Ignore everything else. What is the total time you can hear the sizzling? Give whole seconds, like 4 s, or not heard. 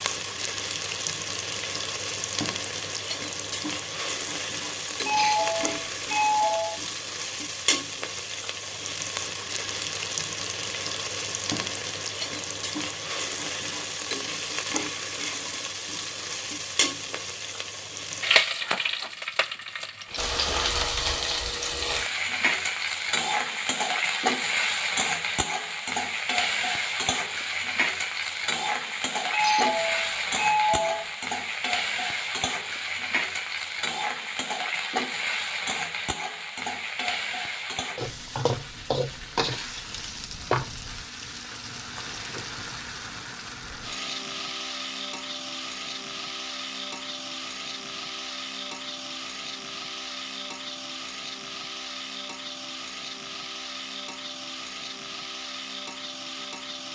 57 s.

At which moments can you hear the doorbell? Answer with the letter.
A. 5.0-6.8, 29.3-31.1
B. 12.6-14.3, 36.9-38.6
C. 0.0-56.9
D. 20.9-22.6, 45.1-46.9
A.